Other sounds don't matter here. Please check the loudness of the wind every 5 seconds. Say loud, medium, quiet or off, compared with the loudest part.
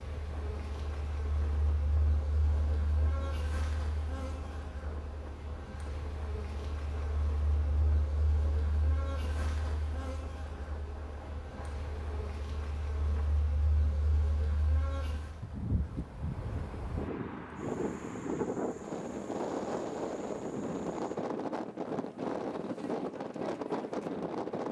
quiet, quiet, quiet, loud, loud.